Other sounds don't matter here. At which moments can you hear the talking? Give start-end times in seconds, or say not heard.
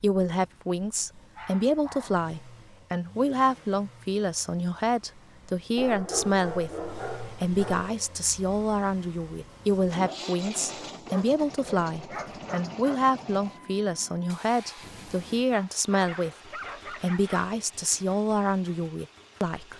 0.0-19.7.